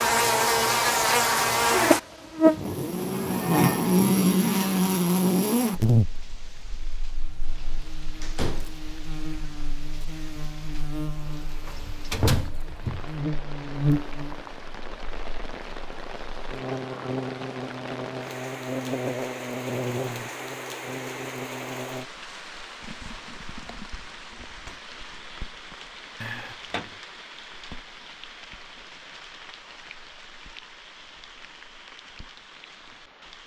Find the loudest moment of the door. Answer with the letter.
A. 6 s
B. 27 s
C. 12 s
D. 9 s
C.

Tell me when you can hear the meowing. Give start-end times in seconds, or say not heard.
not heard.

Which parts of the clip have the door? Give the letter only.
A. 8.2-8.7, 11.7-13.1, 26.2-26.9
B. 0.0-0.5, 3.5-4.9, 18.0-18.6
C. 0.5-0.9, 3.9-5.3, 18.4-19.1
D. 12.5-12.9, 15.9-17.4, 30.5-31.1
A.